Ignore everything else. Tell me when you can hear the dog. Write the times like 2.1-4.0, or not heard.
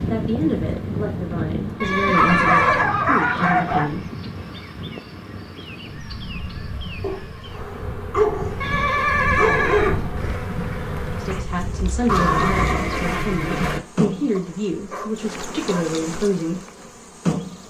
2.1-3.9, 7.0-8.6, 9.3-10.0, 14.3-15.9.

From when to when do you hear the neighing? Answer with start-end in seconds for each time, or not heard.
1.8-2.9, 8.6-10.2, 12.1-13.8.